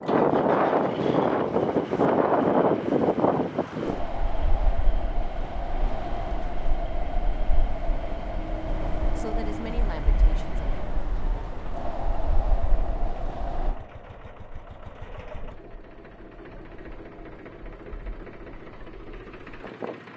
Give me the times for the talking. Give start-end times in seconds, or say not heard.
9.2-10.8.